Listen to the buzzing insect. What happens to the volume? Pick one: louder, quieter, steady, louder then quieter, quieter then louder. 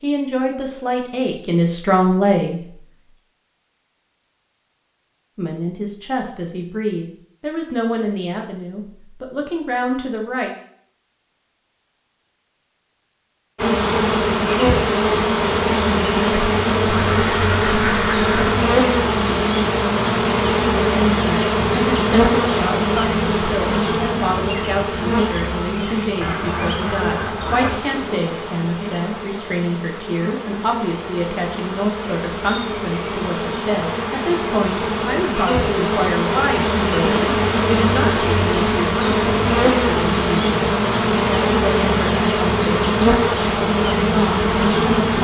quieter then louder.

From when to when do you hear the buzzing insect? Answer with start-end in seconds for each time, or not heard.
13.6-45.1.